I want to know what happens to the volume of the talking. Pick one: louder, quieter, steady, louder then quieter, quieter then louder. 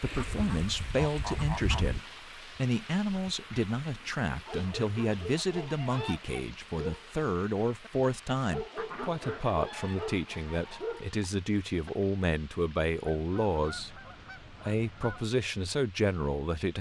steady.